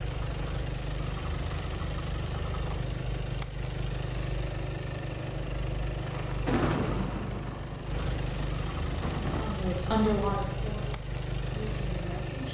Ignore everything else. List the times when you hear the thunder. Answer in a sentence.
The thunder can be heard from 6.0 to 9.6 s.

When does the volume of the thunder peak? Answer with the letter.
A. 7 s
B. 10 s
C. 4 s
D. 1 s
A.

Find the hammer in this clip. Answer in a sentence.
The hammer can't be heard in this clip.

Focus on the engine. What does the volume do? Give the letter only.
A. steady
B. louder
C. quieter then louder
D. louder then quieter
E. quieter
A.